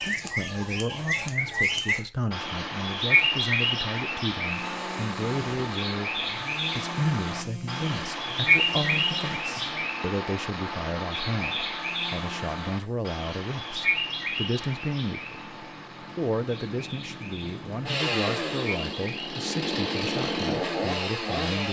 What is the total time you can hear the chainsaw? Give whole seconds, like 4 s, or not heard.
15 s.